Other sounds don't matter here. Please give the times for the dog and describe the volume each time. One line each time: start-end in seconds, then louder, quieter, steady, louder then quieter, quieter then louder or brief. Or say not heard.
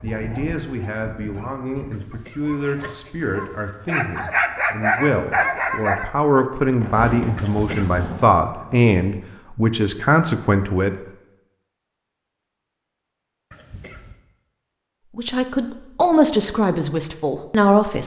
0.0-6.0 quieter then louder.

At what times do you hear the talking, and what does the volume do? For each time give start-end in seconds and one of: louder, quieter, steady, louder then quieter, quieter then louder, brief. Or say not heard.
0.0-10.9 louder
15.2-18.0 brief.